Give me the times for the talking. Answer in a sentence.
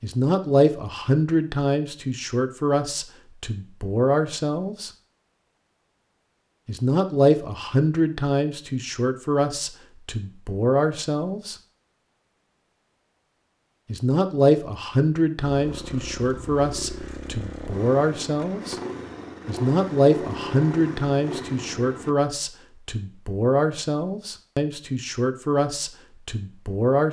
The talking can be heard from 0.0 to 4.9 s, from 6.7 to 11.6 s, from 13.8 to 18.8 s and from 19.4 to 27.0 s.